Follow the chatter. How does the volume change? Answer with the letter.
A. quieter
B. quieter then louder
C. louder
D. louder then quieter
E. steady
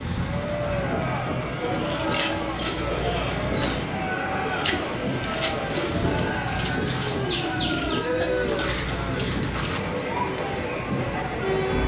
E.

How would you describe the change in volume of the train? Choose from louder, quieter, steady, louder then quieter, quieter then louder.
steady.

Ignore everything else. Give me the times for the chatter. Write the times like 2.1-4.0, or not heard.
0.1-11.8.